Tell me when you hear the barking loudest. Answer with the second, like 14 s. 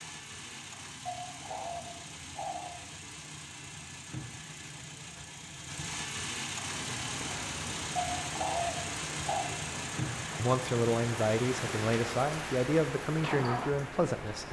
9 s.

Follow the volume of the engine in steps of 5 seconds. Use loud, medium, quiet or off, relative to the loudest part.
medium, loud, loud.